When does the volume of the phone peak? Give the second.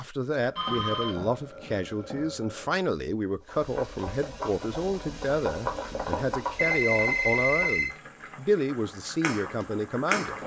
7 s.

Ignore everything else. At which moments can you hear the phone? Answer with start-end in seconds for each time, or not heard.
0.6-2.2, 6.5-7.9.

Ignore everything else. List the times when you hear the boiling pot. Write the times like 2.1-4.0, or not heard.
3.5-10.4.